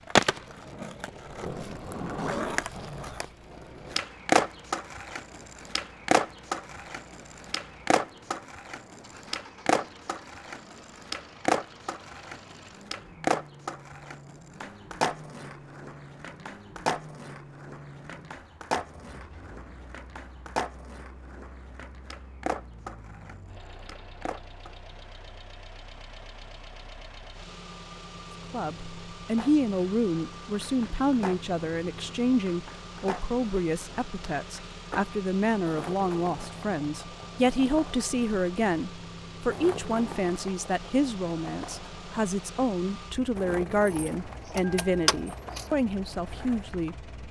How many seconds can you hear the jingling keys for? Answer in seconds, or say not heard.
2 s.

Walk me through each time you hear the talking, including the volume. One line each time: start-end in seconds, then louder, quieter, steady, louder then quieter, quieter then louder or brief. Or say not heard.
28.5-47.1 steady.